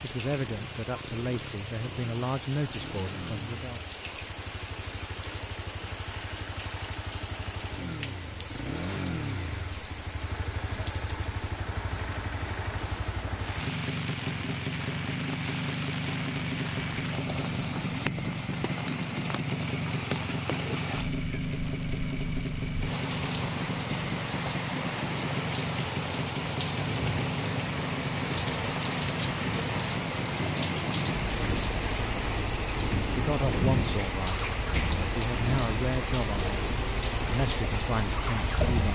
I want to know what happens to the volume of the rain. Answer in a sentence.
The volume of the rain goes up.